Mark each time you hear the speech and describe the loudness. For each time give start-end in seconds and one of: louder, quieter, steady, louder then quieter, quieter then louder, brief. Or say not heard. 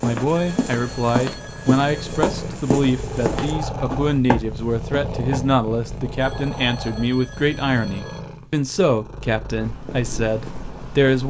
0.0-11.2 steady.